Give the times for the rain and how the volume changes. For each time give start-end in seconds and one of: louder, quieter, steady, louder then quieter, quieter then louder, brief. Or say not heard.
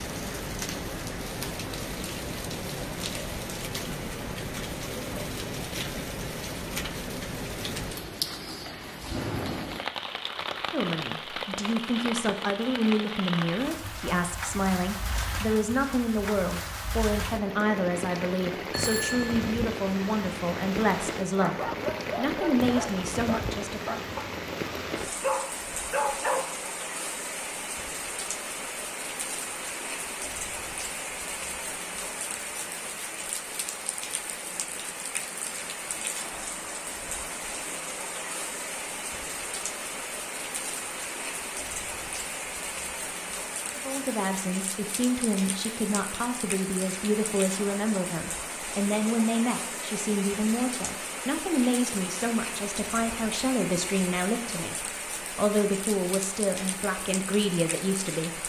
0.0-58.4 steady.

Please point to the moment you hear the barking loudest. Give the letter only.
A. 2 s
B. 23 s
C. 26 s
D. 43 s
C.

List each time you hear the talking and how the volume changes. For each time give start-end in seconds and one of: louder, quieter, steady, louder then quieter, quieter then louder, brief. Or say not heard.
10.7-24.0 steady
43.8-58.4 steady.